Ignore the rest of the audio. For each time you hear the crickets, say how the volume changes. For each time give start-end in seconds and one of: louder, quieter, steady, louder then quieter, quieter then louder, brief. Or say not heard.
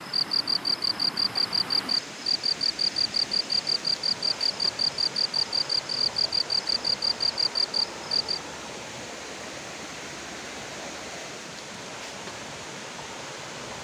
0.0-8.4 steady.